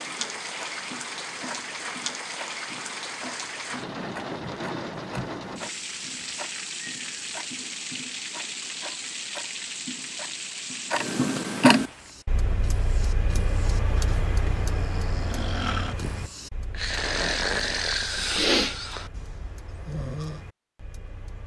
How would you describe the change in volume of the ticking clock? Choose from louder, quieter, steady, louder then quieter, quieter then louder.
louder then quieter.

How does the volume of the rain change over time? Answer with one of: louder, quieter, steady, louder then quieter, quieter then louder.
steady.